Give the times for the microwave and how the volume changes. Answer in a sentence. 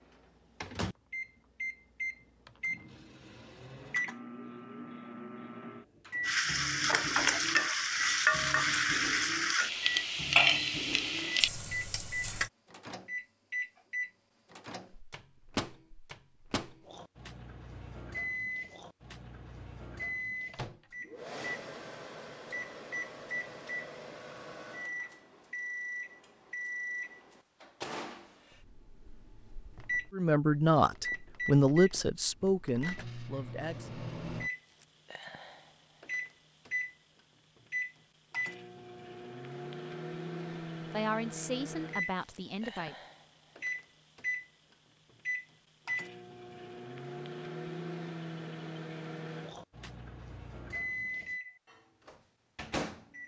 You can hear the microwave from 0.0 to 53.2 s, at a steady volume.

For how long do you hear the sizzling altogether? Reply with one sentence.
You can hear the sizzling for 6 seconds altogether.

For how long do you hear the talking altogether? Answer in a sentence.
The talking can be heard for 6 seconds in total.